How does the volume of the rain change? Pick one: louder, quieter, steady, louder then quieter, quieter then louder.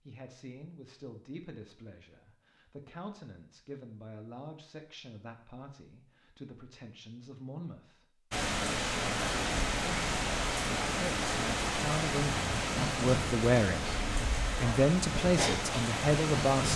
steady.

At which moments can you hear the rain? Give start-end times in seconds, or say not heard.
8.3-16.7.